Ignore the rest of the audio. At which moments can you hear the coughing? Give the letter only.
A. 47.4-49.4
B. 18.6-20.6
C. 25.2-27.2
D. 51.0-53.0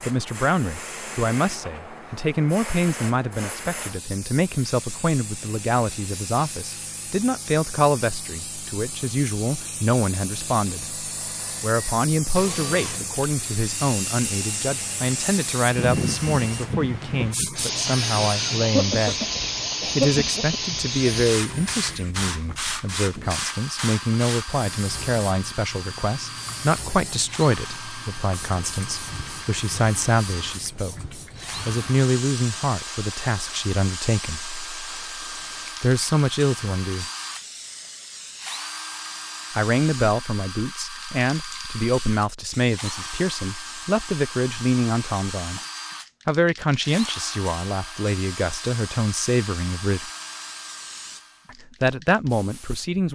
B.